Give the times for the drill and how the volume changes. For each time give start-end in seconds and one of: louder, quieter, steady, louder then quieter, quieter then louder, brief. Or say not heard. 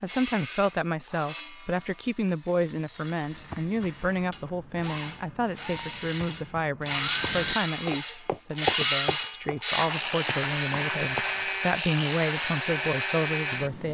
0.0-13.8 louder.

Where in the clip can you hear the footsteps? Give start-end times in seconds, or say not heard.
3.2-11.5.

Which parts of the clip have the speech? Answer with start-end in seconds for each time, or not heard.
0.0-13.8.